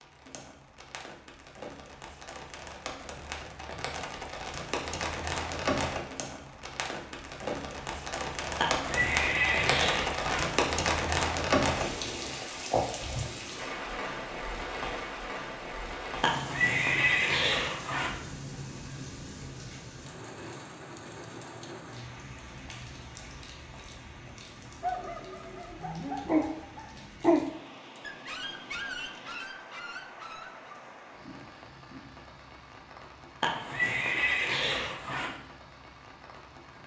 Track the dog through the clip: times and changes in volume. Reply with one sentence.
The dog can be heard from 24.8 to 30.8 s, getting louder then quieter.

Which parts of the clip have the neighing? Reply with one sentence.
The neighing can be heard from 8.6 to 10.6 s, from 16.2 to 18.2 s and from 33.4 to 35.4 s.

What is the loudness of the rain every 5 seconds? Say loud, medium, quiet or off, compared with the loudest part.
medium, loud, loud, medium, quiet, quiet, quiet, quiet.